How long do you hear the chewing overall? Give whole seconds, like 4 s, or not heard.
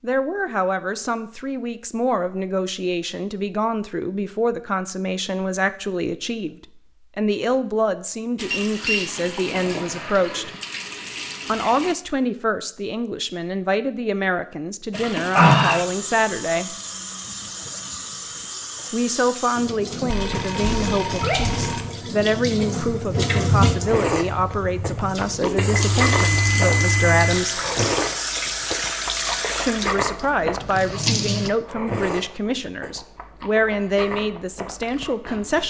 12 s.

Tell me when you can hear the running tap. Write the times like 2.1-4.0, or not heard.
8.3-11.9, 14.9-31.5.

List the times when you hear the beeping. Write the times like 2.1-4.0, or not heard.
8.5-9.1, 20.1-21.9, 25.6-27.4.